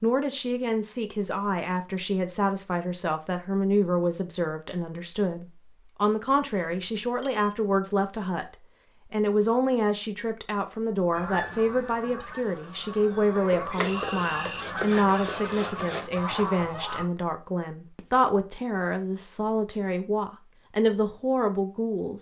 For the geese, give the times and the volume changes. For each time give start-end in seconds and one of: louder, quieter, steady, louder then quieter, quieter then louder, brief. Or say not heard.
11.1-17.1 louder.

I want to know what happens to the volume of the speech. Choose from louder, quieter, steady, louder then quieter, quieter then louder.
steady.